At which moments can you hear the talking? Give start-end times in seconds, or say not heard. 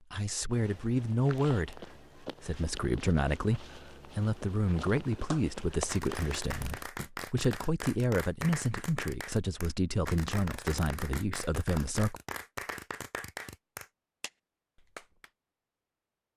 0.1-12.2.